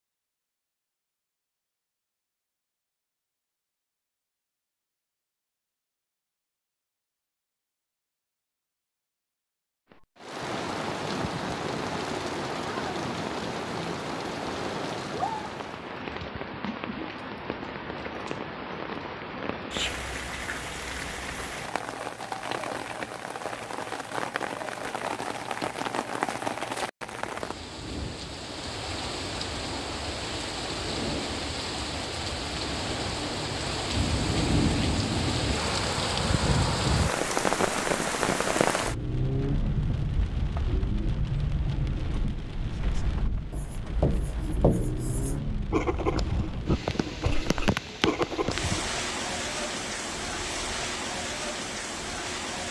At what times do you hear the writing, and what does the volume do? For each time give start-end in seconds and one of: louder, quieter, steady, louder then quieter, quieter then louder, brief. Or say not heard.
42.7-48.9 steady.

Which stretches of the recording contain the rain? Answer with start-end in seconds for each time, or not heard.
9.9-52.6.